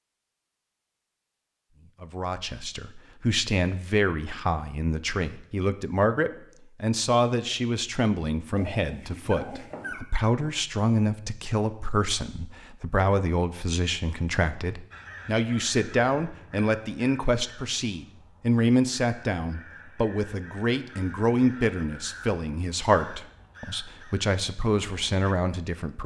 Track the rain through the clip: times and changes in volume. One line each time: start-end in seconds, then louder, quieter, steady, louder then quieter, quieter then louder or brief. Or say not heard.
not heard.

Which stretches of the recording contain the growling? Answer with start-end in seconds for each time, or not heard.
8.6-10.0.